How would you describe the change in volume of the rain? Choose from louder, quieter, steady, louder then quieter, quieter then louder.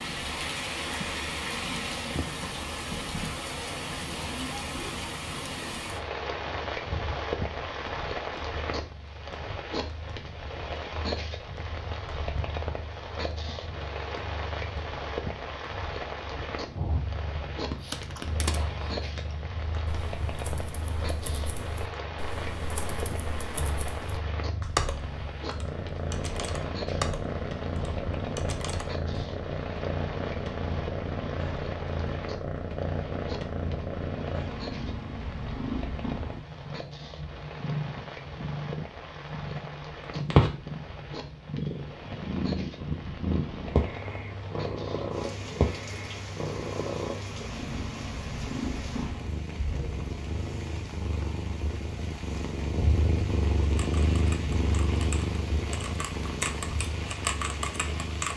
quieter.